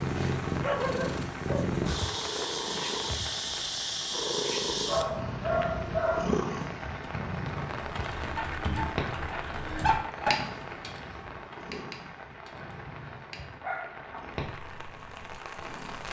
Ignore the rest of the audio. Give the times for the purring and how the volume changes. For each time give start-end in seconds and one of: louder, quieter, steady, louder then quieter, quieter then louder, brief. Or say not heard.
0.0-16.0 quieter.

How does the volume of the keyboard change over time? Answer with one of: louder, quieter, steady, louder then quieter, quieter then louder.
quieter.